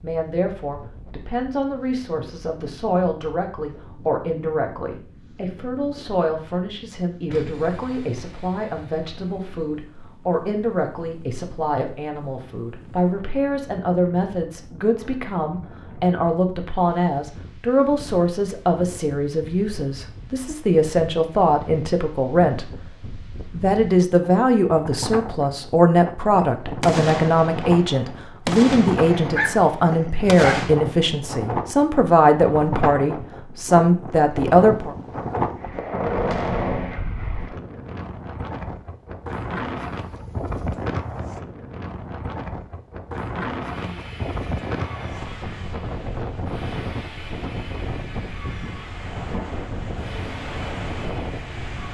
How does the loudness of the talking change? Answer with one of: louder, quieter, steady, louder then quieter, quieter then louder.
louder.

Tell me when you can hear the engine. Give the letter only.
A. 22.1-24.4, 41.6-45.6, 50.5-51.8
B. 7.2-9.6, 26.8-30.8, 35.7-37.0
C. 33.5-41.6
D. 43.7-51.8
D.